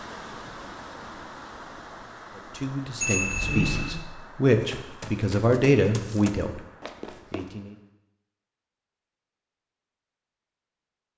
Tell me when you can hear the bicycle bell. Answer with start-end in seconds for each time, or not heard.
3.0-4.0.